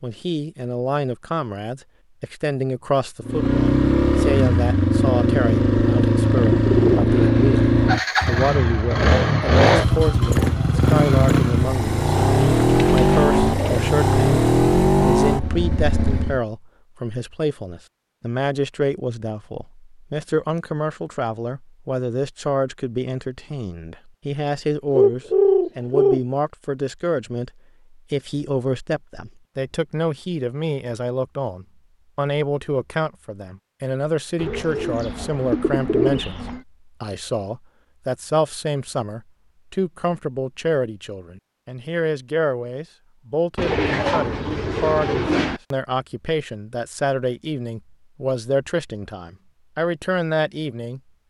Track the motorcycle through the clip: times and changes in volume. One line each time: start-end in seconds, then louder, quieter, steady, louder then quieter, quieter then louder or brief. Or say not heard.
3.2-16.4 steady.